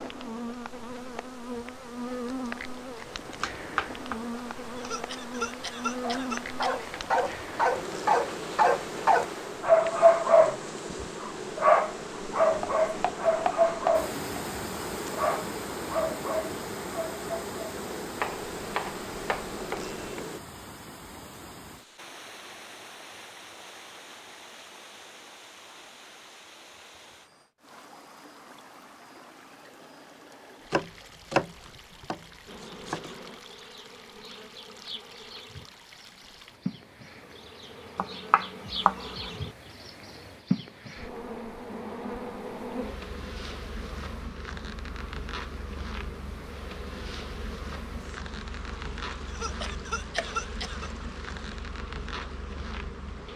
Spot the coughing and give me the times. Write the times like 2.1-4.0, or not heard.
4.8-6.8, 49.2-50.9.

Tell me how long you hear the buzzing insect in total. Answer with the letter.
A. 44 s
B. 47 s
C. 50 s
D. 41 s
D.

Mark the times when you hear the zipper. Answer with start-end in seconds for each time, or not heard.
not heard.